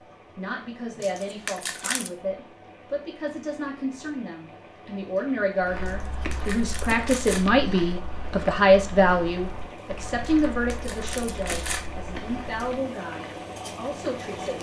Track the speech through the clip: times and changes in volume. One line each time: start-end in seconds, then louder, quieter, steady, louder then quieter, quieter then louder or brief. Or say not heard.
0.3-14.5 louder then quieter.